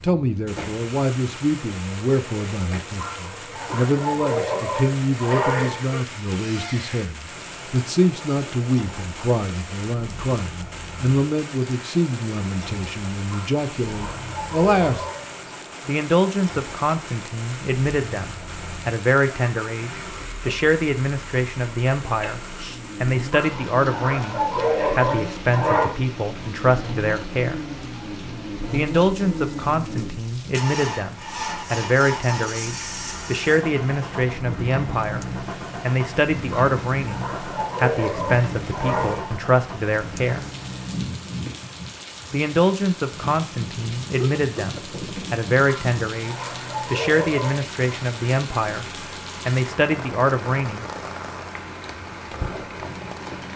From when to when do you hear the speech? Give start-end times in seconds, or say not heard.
0.0-15.1, 15.8-27.6, 28.7-40.5, 42.3-50.9.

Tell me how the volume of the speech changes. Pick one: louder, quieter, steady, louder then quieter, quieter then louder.
steady.